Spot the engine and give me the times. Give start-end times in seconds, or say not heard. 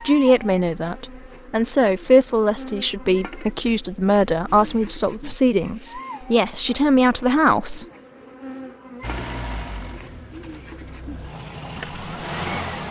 9.0-12.8.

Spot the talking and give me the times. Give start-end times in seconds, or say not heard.
0.0-7.8.